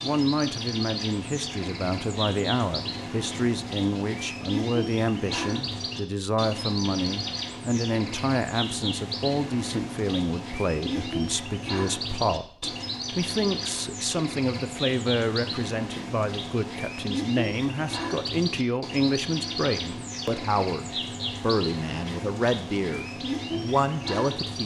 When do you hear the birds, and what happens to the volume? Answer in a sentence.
The birds can be heard from 0.0 to 24.6 s, at a steady volume.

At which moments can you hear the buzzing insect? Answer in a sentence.
The buzzing insect can't be heard in this clip.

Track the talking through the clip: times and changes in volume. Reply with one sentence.
The talking can be heard from 0.0 to 24.6 s, at a steady volume.